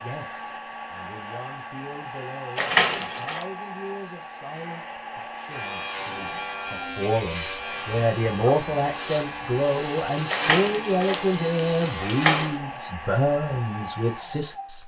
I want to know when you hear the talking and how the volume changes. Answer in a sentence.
The talking can be heard from 0.0 to 14.8 s, getting louder.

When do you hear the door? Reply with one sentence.
The door can be heard from 2.5 to 3.5 s and from 10.3 to 12.6 s.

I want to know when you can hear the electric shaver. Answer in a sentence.
The electric shaver can be heard from 5.5 to 12.6 s.